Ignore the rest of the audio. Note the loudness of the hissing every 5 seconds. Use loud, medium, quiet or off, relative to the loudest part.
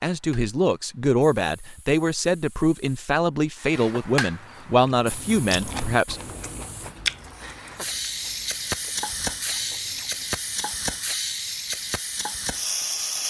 medium, loud, loud.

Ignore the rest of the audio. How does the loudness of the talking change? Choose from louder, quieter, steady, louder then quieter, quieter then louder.
steady.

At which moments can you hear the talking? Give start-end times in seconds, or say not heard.
0.0-6.3.